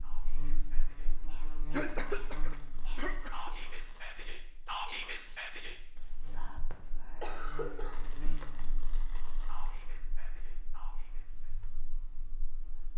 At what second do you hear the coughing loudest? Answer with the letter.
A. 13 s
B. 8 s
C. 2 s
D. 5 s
C.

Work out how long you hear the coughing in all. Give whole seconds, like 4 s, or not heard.
3 s.